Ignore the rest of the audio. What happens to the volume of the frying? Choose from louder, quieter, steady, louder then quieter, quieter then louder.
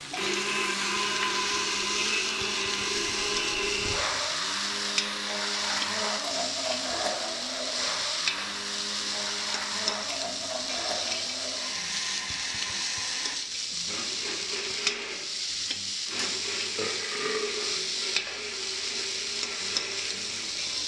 steady.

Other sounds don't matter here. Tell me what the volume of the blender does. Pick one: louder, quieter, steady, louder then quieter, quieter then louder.
quieter.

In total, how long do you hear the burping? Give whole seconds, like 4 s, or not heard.
2 s.